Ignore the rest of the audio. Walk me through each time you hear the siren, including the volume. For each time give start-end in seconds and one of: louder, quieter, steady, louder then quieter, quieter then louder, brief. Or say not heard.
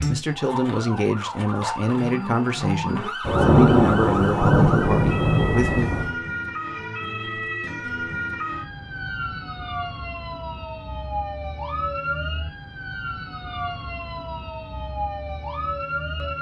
0.0-16.3 steady.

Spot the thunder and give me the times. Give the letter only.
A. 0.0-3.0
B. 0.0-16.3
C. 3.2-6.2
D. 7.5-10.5
C.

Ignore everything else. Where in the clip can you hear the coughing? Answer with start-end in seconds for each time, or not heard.
not heard.